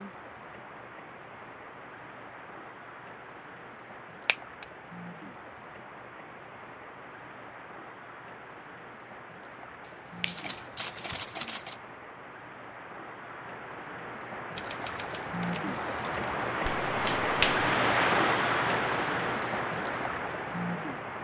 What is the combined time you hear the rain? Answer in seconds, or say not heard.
21 s.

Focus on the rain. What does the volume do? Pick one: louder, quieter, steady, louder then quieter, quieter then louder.
louder.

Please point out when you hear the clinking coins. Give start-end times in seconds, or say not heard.
not heard.